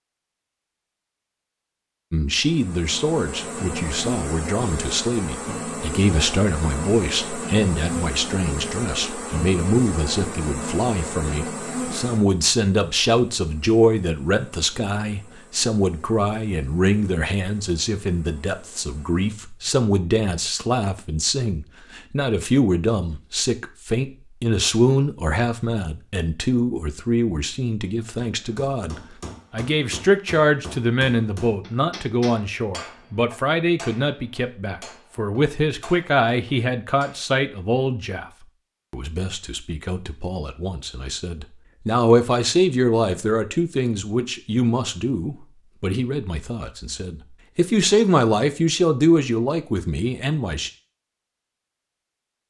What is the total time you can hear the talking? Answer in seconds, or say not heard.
48 s.